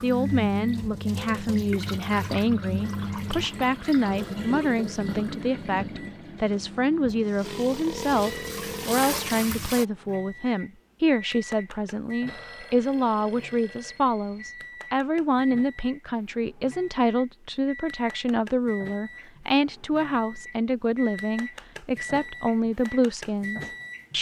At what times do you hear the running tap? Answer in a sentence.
You can hear the running tap from 0.0 to 9.8 s.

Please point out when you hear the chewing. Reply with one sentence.
You can't hear the chewing here.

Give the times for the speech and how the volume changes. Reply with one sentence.
The speech can be heard from 0.0 to 24.1 s, at a steady volume.